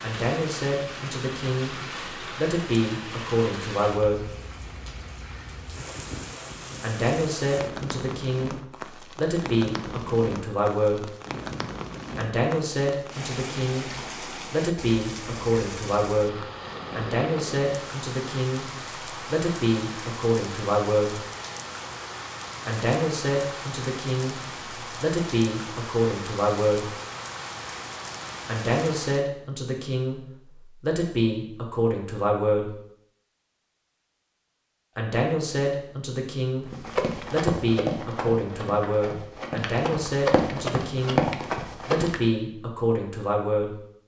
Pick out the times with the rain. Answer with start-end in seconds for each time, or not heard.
0.0-29.3.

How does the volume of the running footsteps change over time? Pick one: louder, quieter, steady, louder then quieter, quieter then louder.
quieter then louder.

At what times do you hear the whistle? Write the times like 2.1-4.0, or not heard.
not heard.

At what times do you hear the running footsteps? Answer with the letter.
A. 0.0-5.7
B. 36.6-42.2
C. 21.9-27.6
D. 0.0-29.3
B.